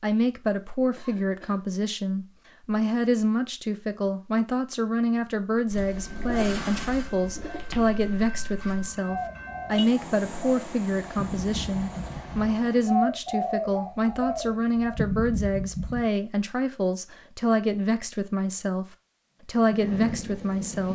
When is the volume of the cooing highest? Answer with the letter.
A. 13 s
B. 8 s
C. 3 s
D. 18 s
A.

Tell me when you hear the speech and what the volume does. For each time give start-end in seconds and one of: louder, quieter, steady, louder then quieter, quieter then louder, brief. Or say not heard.
0.0-18.9 steady
19.4-20.9 brief.